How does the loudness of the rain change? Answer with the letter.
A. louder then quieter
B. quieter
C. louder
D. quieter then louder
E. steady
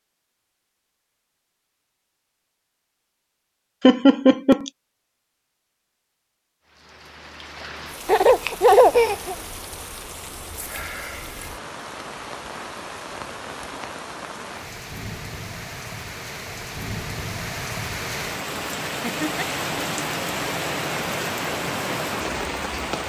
C.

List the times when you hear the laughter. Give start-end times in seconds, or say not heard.
3.8-4.7, 8.1-9.3, 19.0-19.4.